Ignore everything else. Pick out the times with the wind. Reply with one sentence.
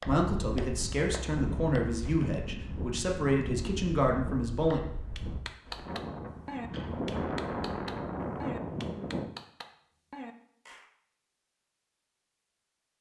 The wind can be heard from 0.2 to 9.3 s.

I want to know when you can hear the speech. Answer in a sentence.
You can hear the speech from 0.1 to 4.8 s.